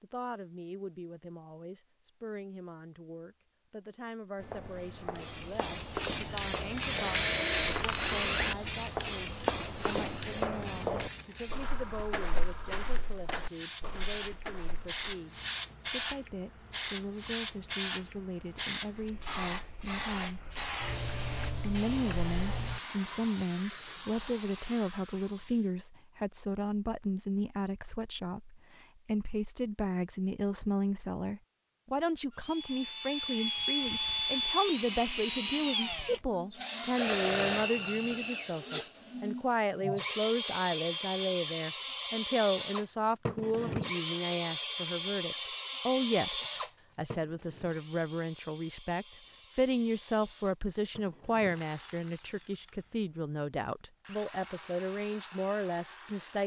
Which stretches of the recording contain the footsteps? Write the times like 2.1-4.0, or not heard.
4.4-15.0.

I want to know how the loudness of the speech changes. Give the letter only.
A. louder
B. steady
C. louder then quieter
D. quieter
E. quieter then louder
A.